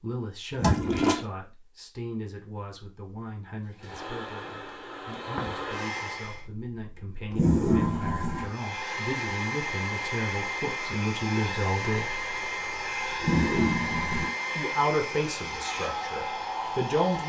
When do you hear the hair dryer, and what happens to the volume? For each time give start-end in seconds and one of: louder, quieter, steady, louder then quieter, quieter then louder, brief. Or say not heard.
3.7-6.5 brief
8.3-17.2 steady.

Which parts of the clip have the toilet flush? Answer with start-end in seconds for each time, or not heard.
0.6-1.2, 6.3-8.5, 12.2-14.3.